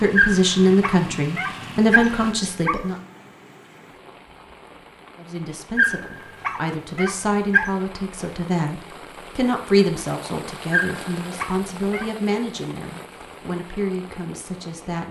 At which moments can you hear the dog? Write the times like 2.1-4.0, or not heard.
0.1-2.8, 5.8-7.7, 10.7-12.1.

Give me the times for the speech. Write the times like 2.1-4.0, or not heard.
0.0-3.0, 5.2-15.0.